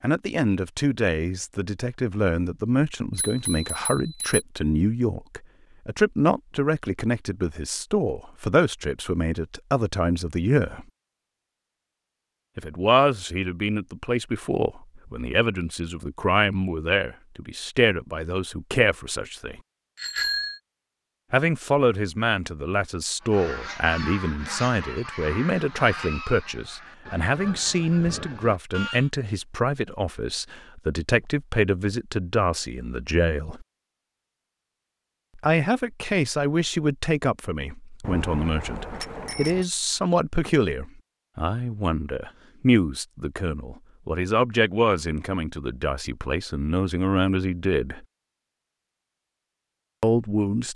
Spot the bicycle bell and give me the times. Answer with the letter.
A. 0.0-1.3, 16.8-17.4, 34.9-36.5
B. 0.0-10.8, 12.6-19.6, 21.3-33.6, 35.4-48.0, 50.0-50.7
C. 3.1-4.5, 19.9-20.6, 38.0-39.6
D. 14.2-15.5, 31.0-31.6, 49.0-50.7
C.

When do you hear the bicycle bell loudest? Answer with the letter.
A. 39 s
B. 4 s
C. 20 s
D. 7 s
C.